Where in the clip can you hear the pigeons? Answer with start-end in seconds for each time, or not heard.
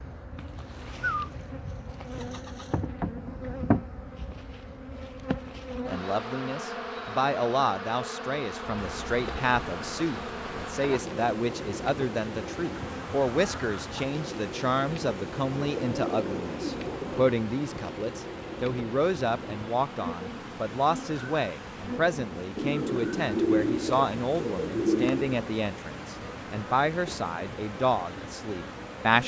0.3-1.3, 2.1-2.8, 15.5-17.4, 22.6-25.4.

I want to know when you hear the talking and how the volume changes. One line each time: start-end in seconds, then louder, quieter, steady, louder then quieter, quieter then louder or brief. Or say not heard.
5.8-29.2 steady.